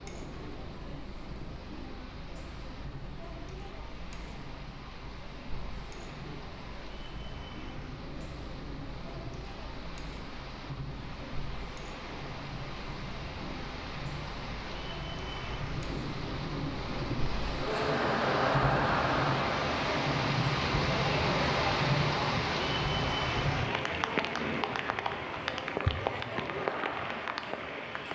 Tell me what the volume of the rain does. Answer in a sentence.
The loudness of the rain goes up.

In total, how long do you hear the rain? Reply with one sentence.
The rain can be heard for 28 seconds in total.